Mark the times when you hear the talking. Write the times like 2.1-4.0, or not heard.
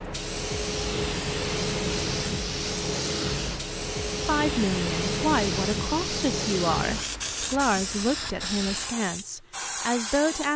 4.2-10.5.